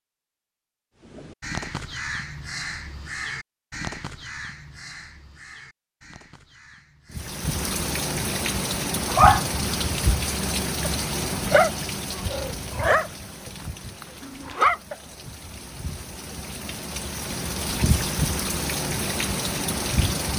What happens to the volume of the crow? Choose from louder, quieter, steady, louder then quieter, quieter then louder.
quieter.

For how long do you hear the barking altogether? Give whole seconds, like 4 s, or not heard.
6 s.